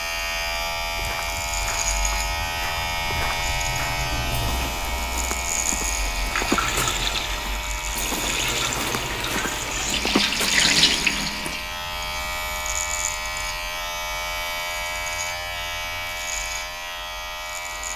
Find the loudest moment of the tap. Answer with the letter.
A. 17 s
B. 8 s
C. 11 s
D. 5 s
C.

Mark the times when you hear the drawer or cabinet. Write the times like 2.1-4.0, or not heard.
not heard.